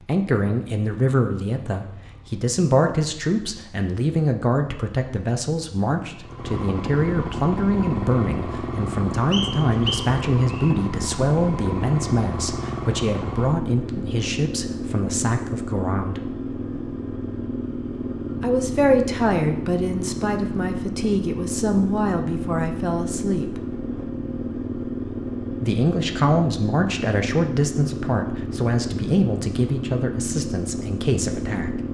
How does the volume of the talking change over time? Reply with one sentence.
The volume of the talking stays about the same.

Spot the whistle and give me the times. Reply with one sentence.
The whistle can be heard from 9.3 to 10.7 s.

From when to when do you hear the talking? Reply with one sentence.
The talking can be heard from 0.1 to 16.2 s, from 18.4 to 23.6 s and from 25.6 to 31.8 s.